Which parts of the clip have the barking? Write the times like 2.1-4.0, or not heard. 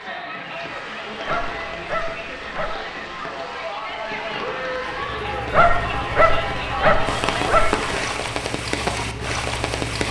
1.2-2.8, 5.5-7.8.